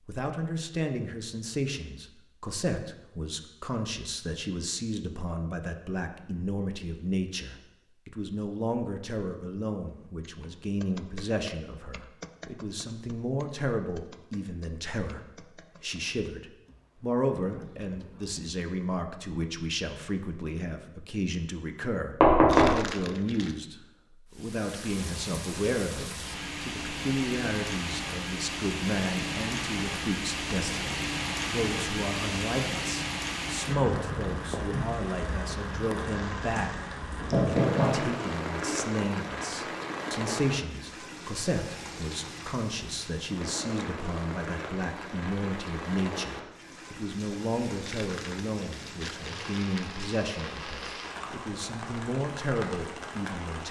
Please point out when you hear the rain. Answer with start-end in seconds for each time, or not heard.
24.3-53.6.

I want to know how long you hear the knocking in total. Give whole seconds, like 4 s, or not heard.
2 s.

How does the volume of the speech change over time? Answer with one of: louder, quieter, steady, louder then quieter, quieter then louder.
steady.